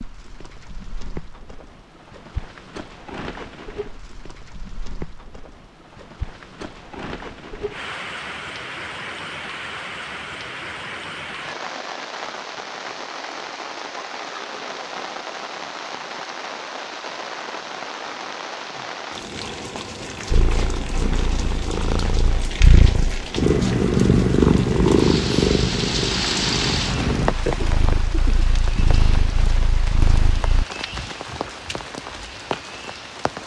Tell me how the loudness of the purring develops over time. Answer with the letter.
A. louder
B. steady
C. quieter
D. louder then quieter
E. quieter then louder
D.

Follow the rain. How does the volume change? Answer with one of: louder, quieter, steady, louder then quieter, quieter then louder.
louder.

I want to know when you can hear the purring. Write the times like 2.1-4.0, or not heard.
20.3-30.6.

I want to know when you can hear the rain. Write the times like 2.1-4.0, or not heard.
0.0-33.4.